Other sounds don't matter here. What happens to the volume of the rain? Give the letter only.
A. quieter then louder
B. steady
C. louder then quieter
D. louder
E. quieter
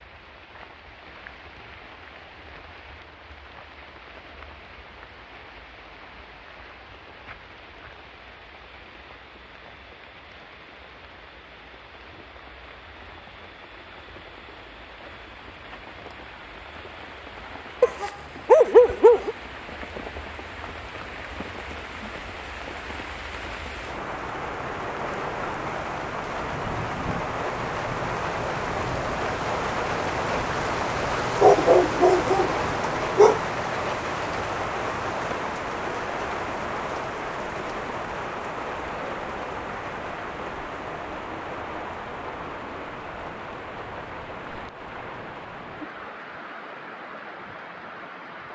C.